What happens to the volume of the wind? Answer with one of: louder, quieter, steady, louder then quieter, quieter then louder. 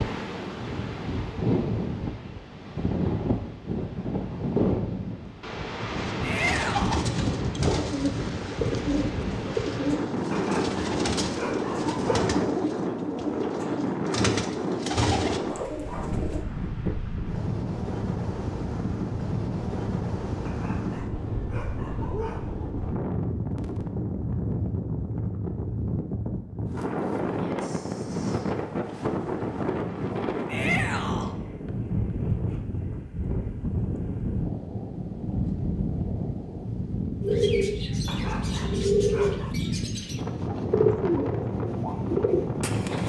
steady.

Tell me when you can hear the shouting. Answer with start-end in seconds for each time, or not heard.
6.2-7.0, 30.4-31.4.